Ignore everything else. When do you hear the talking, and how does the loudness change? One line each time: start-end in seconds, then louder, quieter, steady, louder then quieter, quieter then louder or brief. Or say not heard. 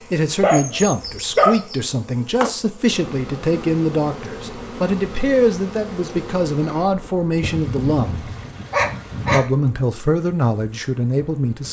0.1-8.3 steady
9.3-11.6 brief.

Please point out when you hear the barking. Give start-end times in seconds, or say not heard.
0.4-1.6, 7.4-9.4.